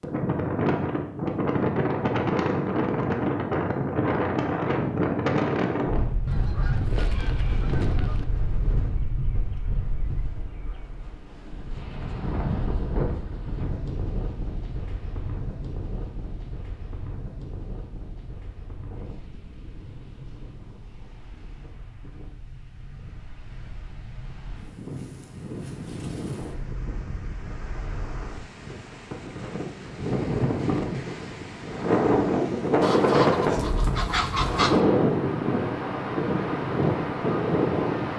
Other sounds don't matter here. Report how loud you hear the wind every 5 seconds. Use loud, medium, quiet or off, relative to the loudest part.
loud, medium, medium, quiet, quiet, quiet, loud, loud.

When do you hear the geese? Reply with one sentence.
The geese can be heard from 6.2 to 8.2 s and from 32.8 to 34.8 s.